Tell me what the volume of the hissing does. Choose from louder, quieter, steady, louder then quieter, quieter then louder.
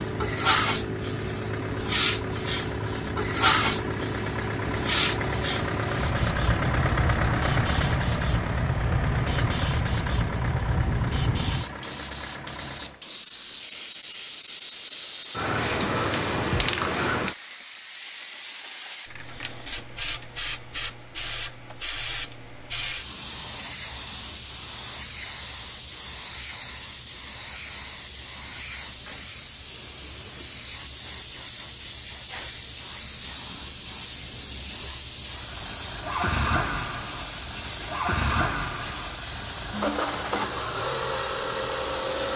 quieter.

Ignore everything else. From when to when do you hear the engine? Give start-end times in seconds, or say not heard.
0.0-13.0, 35.3-42.3.